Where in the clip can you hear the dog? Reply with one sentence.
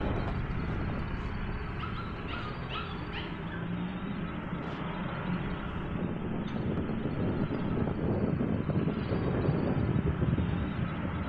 The dog can be heard from 1.6 to 3.6 s.